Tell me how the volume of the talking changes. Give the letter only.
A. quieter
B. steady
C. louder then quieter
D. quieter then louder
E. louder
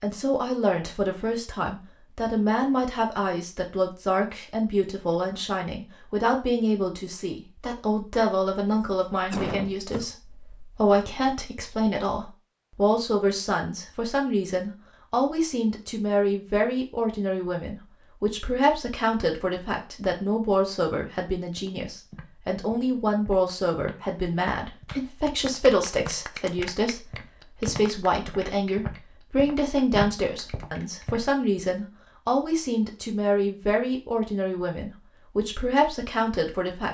B.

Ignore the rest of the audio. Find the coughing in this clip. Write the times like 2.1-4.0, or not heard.
8.8-10.2.